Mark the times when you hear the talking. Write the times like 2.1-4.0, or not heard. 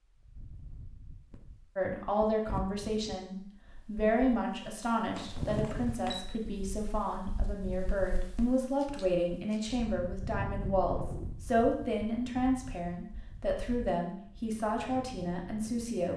1.8-16.1.